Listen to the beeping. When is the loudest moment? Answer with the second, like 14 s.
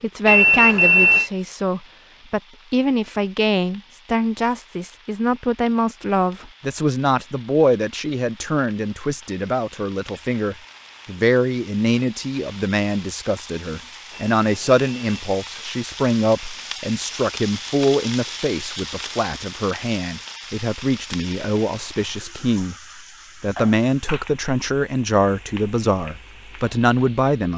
1 s.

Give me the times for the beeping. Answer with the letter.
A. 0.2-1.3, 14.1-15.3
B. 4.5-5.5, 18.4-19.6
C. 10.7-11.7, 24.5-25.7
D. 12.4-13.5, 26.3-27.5
A.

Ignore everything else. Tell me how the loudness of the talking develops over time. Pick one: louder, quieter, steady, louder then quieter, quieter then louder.
steady.